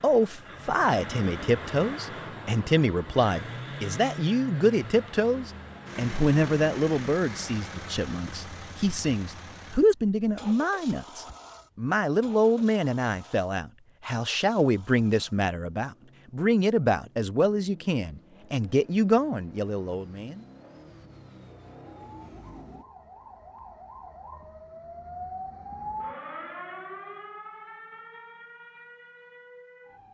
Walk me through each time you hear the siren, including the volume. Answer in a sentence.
The siren can be heard from 21.9 to 30.0 s, getting louder then quieter.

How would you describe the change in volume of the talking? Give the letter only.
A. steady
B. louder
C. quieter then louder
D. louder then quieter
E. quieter
A.